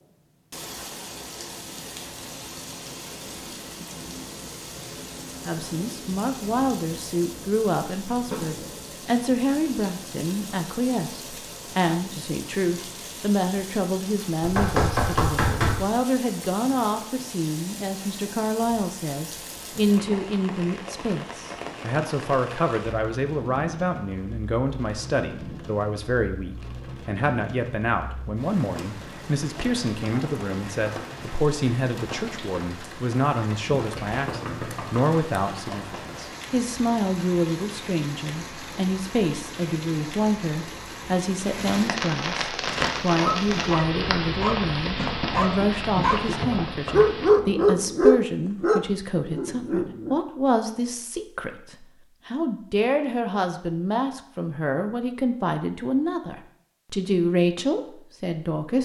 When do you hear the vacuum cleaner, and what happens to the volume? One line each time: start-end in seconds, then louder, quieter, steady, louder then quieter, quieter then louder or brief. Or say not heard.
not heard.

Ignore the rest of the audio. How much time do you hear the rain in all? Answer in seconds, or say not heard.
47 s.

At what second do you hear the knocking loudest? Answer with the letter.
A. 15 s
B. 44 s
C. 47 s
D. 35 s
A.